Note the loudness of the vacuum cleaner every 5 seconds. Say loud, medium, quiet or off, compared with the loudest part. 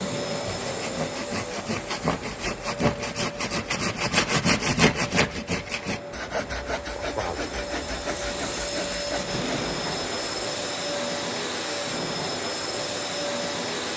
medium, loud, loud.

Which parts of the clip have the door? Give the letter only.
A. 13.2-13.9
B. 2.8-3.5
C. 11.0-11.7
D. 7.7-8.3
B.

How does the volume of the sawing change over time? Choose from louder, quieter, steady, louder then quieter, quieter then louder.
louder then quieter.